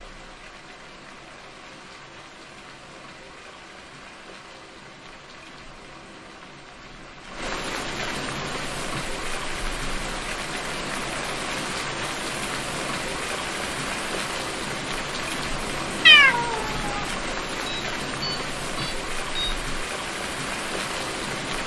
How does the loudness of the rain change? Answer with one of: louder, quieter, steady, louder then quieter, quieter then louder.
louder.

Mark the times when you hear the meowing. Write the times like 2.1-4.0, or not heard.
16.1-17.0.